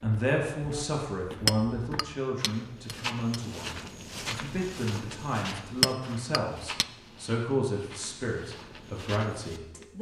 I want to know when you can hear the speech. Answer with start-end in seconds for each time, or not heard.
0.0-9.9.